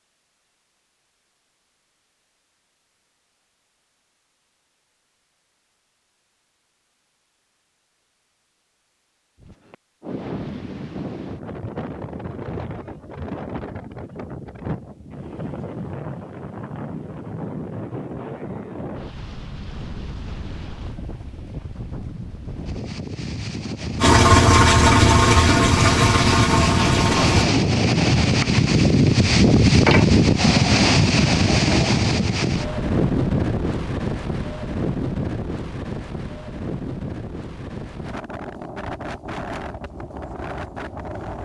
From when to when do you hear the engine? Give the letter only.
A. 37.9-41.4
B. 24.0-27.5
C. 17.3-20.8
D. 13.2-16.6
B.